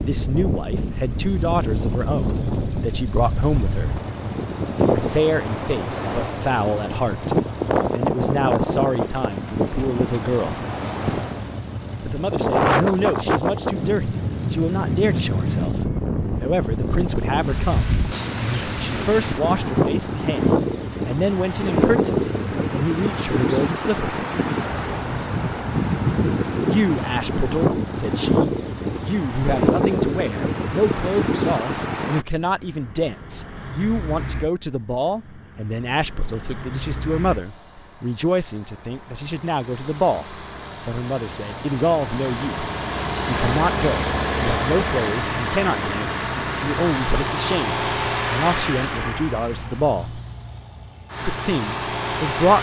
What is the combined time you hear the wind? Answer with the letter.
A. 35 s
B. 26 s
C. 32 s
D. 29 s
C.